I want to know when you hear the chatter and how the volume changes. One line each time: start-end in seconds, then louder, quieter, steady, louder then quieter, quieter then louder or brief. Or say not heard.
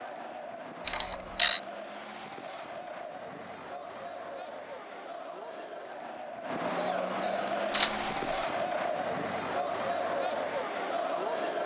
0.0-11.6 louder.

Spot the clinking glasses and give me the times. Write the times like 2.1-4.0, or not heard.
not heard.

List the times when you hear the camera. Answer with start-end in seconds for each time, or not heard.
0.8-1.6, 7.7-8.4.